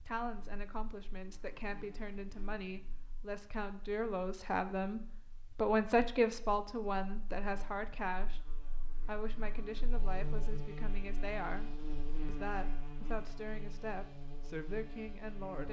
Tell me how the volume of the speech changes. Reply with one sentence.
The loudness of the speech goes up, then down.